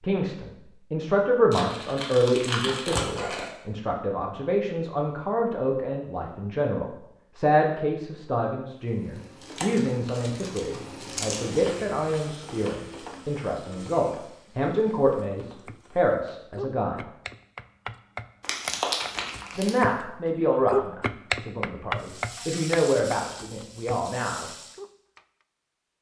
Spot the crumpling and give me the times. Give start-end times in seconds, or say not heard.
1.5-3.5, 9.4-11.4, 18.4-19.8.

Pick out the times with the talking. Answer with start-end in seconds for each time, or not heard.
0.0-17.1, 19.6-24.5.